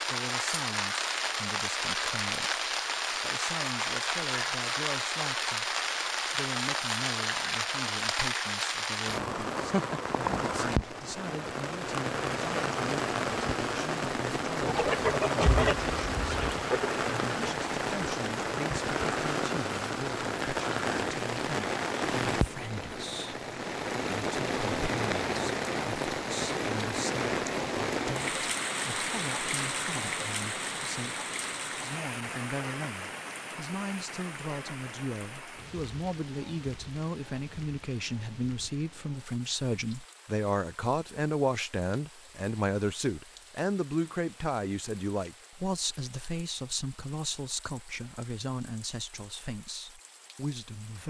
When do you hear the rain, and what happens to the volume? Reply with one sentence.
You can hear the rain from 0.0 to 51.0 s, getting quieter.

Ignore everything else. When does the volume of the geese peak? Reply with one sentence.
The loudest moment of the geese is at 16 seconds.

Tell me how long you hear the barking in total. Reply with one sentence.
The barking can't be heard in this clip.